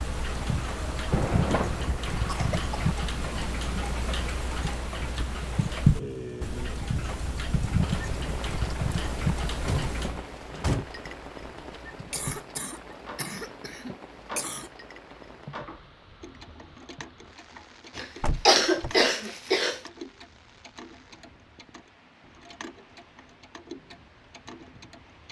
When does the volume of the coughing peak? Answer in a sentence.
The loudest moment of the coughing is at 19 seconds.